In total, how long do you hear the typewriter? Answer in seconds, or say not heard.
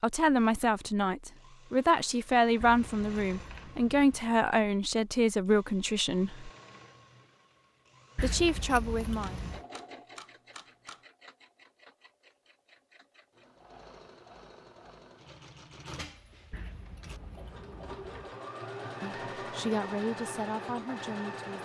2 s.